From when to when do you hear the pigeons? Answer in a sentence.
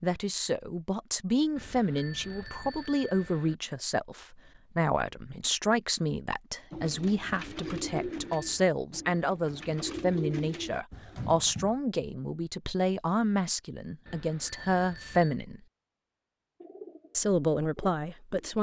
The pigeons can be heard from 6.7 to 11.8 s and from 16.6 to 18.5 s.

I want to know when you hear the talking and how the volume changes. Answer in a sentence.
The talking can be heard from 0.0 to 15.6 s, at a steady volume; and briefly from 17.1 to 18.5 s.